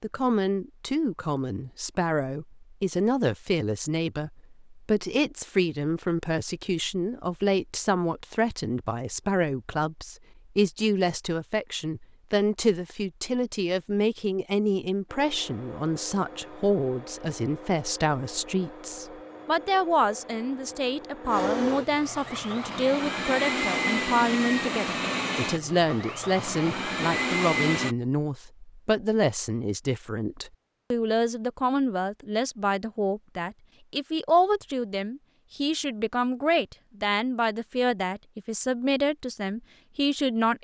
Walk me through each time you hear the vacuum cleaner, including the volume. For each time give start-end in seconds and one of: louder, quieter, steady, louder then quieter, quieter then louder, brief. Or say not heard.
15.1-27.9 louder.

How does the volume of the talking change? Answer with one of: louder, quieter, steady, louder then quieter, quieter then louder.
steady.